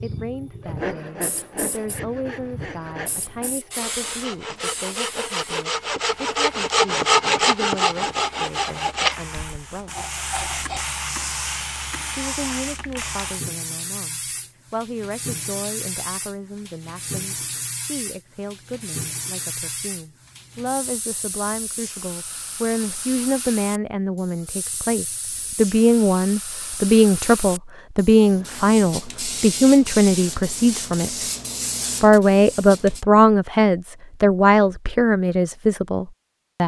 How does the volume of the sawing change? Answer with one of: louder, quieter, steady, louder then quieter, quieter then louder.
louder then quieter.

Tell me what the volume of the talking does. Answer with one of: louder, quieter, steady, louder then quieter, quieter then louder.
louder.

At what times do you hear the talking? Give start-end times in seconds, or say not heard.
0.0-9.9, 12.1-31.1, 32.0-36.6.